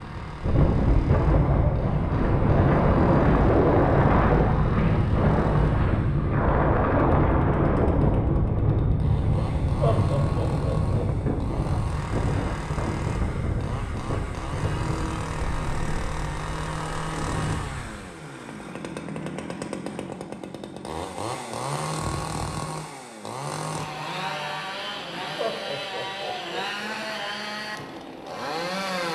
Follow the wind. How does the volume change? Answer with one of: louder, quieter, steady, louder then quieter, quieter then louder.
quieter.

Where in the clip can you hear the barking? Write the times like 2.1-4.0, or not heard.
not heard.